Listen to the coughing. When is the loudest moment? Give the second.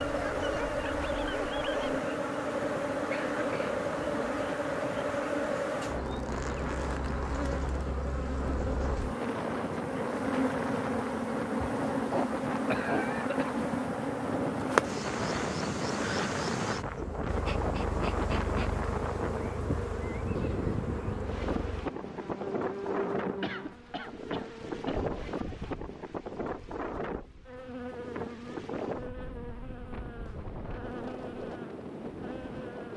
13 s.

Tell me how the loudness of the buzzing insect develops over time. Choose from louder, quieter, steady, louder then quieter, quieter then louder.
quieter.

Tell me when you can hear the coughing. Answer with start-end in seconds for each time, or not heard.
3.1-3.8, 11.9-13.6, 23.4-25.1.